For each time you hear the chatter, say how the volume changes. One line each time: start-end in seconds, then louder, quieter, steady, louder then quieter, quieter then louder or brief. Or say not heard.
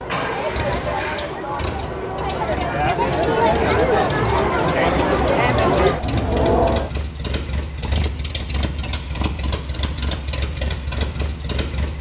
0.0-6.9 louder.